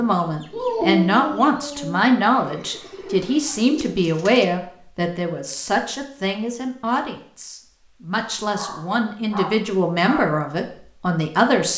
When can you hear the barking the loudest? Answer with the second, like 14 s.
1 s.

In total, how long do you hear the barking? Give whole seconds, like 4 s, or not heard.
4 s.